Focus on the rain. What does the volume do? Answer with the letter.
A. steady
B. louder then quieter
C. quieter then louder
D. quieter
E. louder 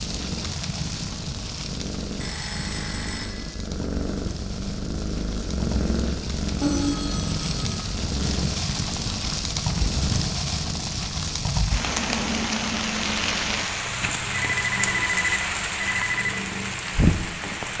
E.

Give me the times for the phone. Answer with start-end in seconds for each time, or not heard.
2.2-3.5, 6.6-7.9, 14.6-16.4.